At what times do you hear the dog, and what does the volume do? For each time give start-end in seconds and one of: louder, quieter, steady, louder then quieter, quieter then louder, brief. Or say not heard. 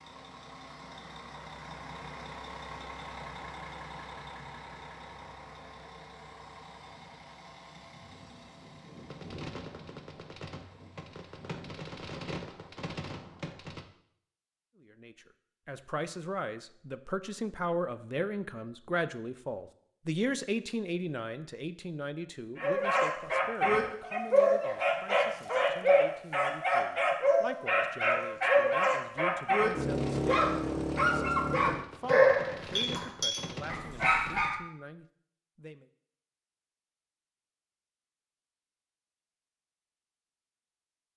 22.6-34.6 steady.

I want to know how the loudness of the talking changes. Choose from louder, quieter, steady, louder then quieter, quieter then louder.
quieter.